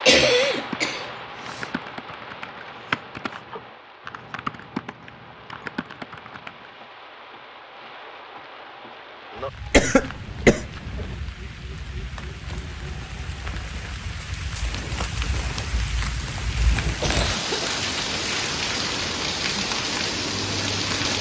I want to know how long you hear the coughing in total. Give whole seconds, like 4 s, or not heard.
4 s.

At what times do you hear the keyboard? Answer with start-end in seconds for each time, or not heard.
0.3-6.7.